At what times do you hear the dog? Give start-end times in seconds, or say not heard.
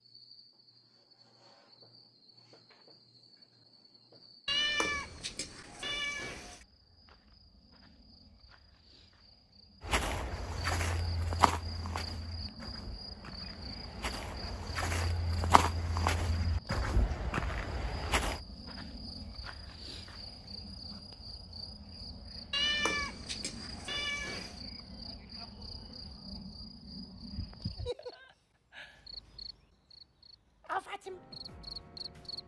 not heard.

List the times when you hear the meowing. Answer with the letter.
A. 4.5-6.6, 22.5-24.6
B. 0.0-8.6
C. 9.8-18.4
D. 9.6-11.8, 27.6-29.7
A.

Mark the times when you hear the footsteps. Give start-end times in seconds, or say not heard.
9.8-18.4.